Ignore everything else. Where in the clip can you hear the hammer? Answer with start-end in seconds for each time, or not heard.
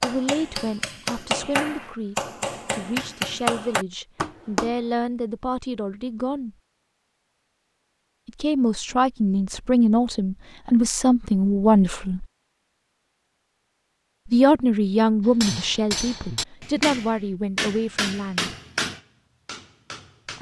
0.0-4.8, 15.2-20.3.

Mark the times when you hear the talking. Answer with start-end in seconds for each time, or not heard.
0.0-6.5, 8.2-12.2, 14.2-18.6.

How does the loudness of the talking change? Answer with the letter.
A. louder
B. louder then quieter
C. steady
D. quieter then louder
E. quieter
B.